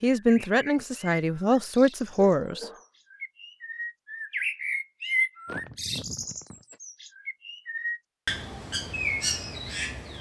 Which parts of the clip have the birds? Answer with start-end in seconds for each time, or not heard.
0.2-10.1.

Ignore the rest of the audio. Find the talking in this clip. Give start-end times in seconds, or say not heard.
0.0-2.7.